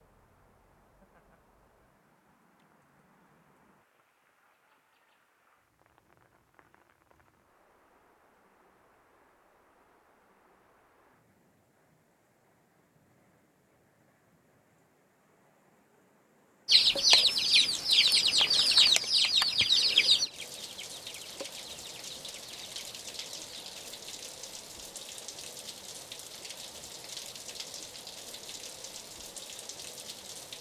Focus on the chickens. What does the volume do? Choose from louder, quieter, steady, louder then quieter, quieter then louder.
quieter.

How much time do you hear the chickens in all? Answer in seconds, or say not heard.
7 s.